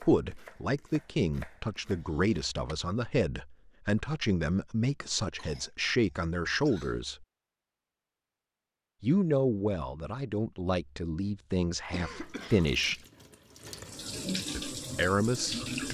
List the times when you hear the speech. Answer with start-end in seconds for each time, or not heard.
0.0-7.2, 9.0-13.0, 14.6-15.8.